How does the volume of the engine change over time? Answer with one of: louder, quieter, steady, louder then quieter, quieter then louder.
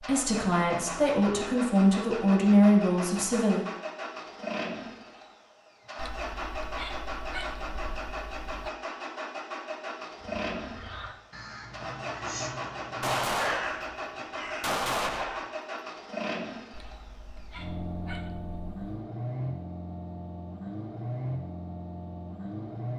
steady.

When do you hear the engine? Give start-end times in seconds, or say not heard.
0.0-22.9.